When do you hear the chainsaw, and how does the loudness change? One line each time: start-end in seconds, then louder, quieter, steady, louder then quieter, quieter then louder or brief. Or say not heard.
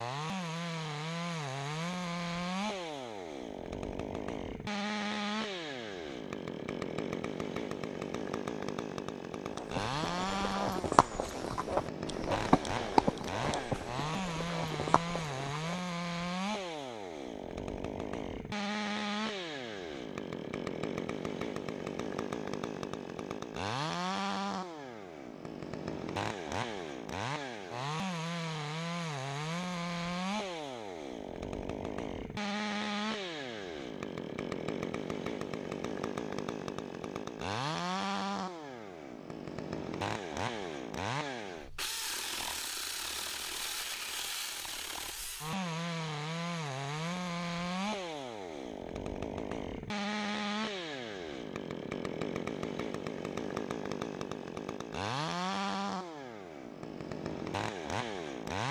0.0-58.6 steady.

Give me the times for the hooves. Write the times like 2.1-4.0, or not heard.
9.5-15.8.